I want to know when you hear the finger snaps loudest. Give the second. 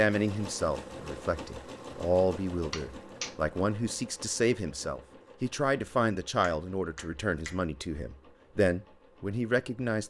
3 s.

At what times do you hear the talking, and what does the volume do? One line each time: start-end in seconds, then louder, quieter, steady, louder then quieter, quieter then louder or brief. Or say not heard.
0.0-10.0 steady.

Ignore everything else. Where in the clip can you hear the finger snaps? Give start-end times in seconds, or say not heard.
2.7-3.3, 6.4-7.5.